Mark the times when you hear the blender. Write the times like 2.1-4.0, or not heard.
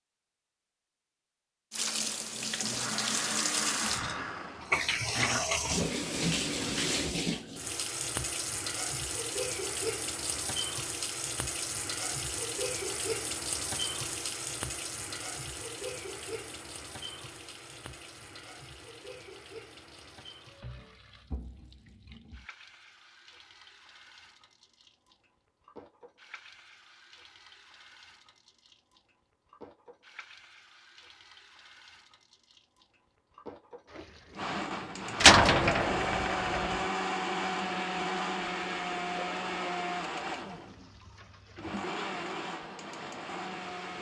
1.9-5.5, 34.3-43.9.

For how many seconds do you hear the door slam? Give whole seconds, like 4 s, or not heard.
2 s.